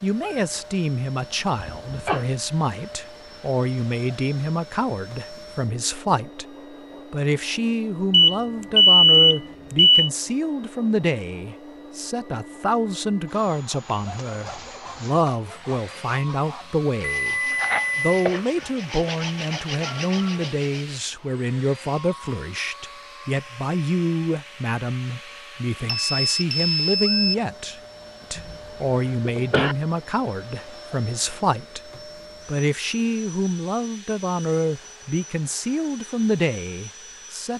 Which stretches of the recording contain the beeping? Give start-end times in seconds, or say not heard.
8.1-10.1, 17.2-18.1, 25.9-27.4.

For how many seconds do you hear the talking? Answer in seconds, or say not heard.
37 s.